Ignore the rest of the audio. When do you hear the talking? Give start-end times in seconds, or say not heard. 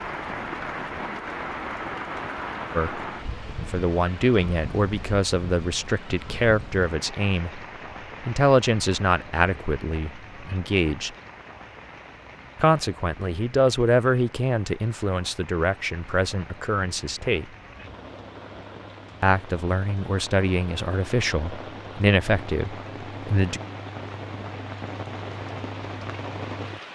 2.8-7.6, 8.2-11.1, 12.6-17.5, 19.2-23.6.